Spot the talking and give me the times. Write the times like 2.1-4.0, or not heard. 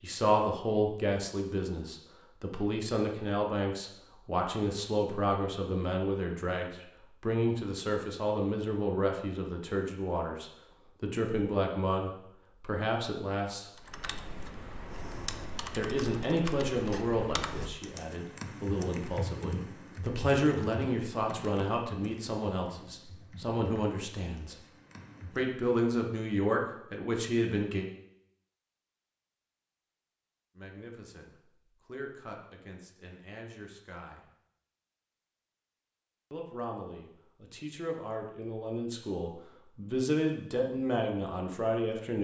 0.0-13.8, 15.8-24.6, 25.3-27.9, 30.6-34.2, 36.3-42.1.